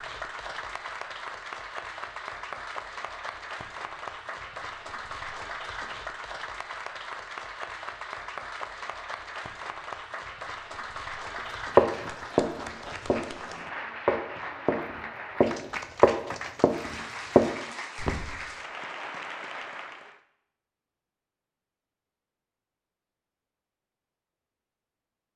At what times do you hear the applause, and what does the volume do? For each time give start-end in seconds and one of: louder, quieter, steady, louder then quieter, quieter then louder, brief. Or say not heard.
0.0-20.2 steady.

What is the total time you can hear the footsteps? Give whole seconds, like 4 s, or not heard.
6 s.